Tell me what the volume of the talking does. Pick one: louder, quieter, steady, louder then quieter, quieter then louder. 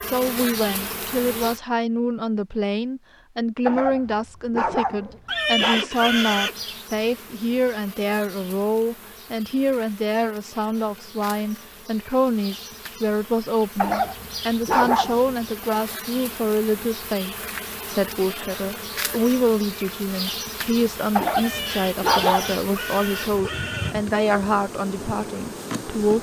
steady.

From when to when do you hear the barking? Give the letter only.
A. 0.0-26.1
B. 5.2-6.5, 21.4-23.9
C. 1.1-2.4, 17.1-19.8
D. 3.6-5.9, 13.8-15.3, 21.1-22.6
D.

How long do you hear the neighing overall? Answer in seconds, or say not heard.
4 s.